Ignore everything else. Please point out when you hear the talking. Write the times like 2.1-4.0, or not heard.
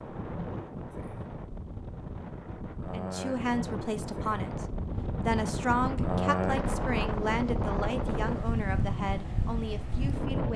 2.9-10.5.